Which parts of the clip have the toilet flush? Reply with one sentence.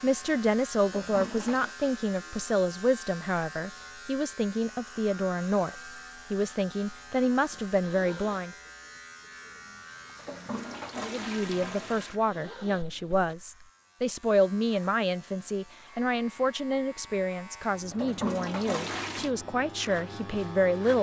The toilet flush can be heard from 0.8 to 1.8 s, from 10.2 to 12.2 s and from 17.9 to 19.3 s.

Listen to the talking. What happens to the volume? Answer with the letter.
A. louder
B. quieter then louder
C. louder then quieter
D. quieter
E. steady
E.